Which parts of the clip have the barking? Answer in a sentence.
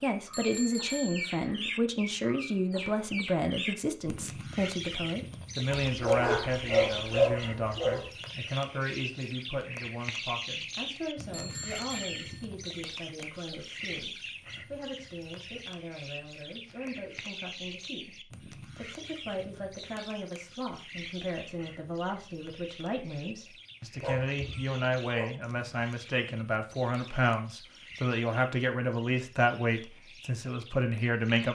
You can hear the barking from 5.7 to 8.1 s and from 23.9 to 25.4 s.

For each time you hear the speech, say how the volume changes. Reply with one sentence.
The speech can be heard from 0.0 to 31.5 s, getting quieter then louder.